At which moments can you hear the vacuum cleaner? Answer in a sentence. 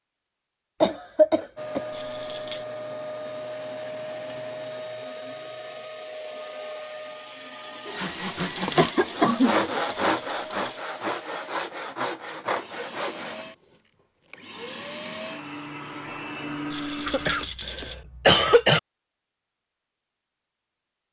You can hear the vacuum cleaner from 1.6 to 17.5 s.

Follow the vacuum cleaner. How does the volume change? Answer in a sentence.
The volume of the vacuum cleaner goes down, then up.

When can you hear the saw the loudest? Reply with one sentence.
The volume of the saw peaks at 10 seconds.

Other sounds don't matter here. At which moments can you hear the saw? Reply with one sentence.
You can hear the saw from 8.0 to 13.4 s.